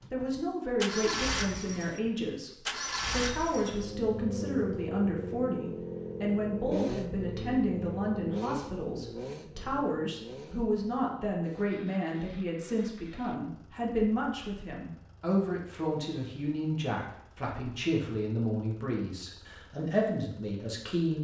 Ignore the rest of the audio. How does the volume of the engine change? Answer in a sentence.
The loudness of the engine goes down.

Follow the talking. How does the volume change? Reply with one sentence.
The volume of the talking stays about the same.